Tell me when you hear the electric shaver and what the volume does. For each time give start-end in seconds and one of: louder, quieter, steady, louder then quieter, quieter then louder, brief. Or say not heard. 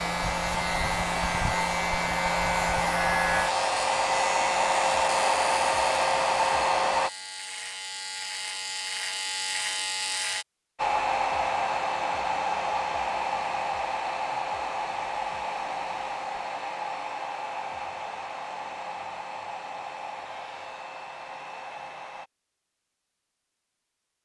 0.0-10.4 quieter then louder.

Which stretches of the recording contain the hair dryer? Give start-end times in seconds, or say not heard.
0.0-7.1, 10.8-22.3.